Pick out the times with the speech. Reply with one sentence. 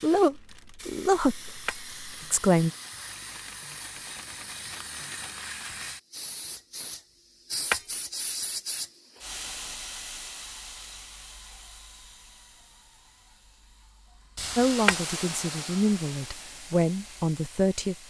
The speech can be heard from 0.0 to 2.7 s and from 14.6 to 18.0 s.